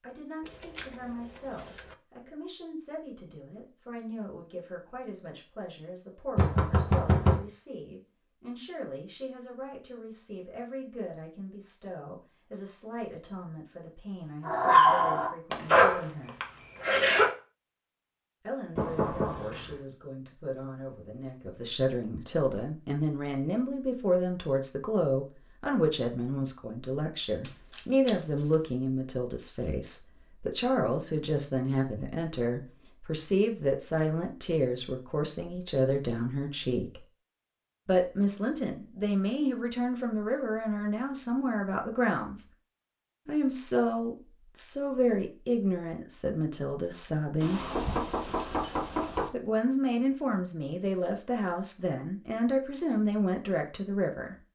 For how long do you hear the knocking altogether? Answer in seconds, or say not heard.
4 s.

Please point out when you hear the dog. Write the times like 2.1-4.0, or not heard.
14.4-17.3.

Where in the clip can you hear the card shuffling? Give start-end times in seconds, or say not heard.
0.4-1.9, 27.4-28.2.